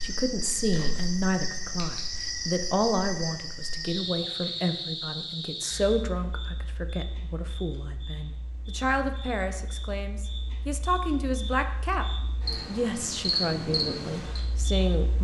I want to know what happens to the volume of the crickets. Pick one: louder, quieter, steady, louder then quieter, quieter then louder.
quieter then louder.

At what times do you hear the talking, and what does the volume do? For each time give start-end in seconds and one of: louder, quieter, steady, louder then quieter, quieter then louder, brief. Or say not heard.
0.0-12.1 steady
12.7-15.2 brief.